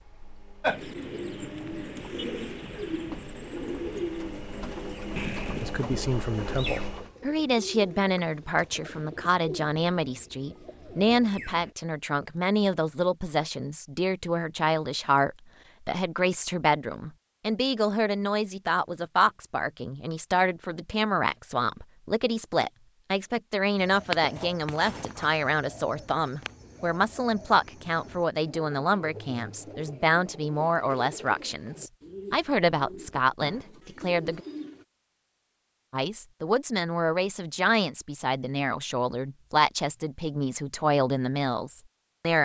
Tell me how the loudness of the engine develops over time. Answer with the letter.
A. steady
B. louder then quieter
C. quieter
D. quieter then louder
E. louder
E.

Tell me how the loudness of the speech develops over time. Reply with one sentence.
The loudness of the speech stays about the same.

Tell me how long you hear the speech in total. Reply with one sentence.
The speech can be heard for 35 seconds in total.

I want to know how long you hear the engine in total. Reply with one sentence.
The engine can be heard for 7 seconds in total.